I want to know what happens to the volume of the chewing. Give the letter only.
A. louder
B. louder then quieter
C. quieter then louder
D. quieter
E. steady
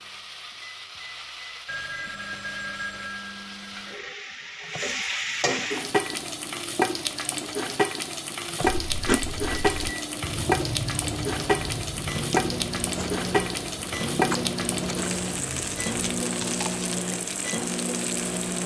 D.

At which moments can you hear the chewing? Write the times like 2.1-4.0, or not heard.
8.6-16.9.